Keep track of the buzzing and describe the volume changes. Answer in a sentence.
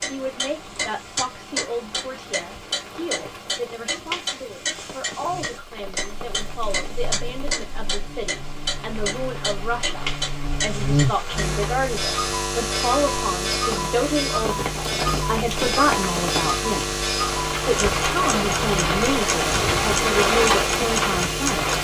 The volume of the buzzing goes up.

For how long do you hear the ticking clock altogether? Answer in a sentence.
The ticking clock can be heard for 22 seconds in total.